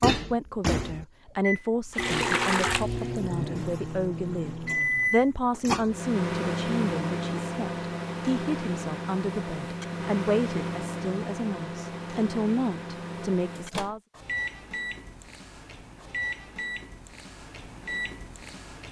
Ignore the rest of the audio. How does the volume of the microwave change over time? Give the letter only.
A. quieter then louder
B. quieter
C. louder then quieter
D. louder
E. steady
B.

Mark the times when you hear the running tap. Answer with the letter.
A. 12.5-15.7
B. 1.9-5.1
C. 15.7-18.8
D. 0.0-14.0
B.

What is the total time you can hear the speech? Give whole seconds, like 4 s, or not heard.
14 s.